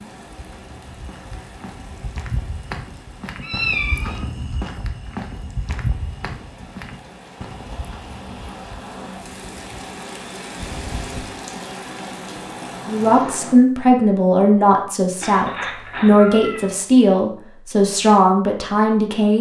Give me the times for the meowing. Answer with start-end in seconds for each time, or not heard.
3.4-4.2, 10.6-11.2, 15.2-16.8.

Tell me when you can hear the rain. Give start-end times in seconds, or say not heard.
0.0-13.6.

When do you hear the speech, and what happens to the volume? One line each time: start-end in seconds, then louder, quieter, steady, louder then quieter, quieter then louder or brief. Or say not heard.
12.8-19.3 steady.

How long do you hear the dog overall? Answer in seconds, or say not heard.
not heard.